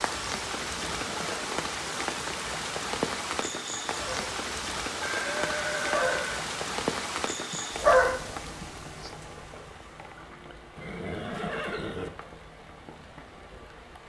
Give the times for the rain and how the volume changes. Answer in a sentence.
You can hear the rain from 0.0 to 14.0 s, getting quieter.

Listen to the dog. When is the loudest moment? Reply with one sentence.
The volume of the dog peaks at 8 seconds.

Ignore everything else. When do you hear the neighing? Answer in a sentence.
The neighing can be heard from 0.5 to 1.5 s, from 5.0 to 6.5 s and from 10.8 to 12.1 s.